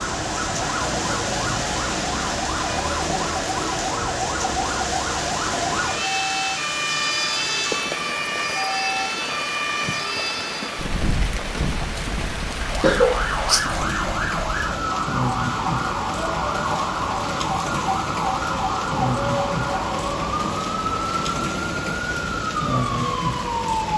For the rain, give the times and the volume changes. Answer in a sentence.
You can hear the rain from 0.0 to 23.9 s, at a steady volume.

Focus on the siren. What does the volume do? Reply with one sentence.
The loudness of the siren stays about the same.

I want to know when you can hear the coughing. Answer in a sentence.
The coughing can be heard from 12.8 to 13.6 s.